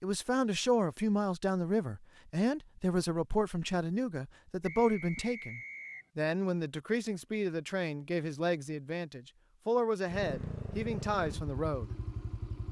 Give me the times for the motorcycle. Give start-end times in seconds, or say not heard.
10.1-12.6.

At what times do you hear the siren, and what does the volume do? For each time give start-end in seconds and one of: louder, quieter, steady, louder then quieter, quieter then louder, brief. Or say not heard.
not heard.